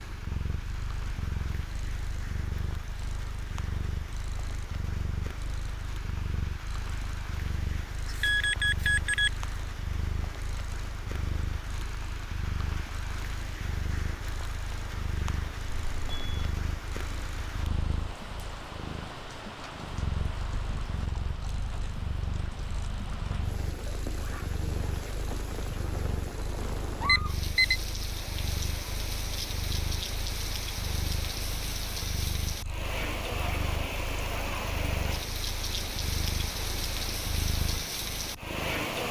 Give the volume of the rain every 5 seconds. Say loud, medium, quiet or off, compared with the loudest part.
quiet, medium, medium, medium, medium, loud, loud, loud.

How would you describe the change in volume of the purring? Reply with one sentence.
The loudness of the purring stays about the same.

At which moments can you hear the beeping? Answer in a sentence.
The beeping can be heard from 8.1 to 9.3 s, from 15.7 to 16.5 s and from 27.1 to 27.8 s.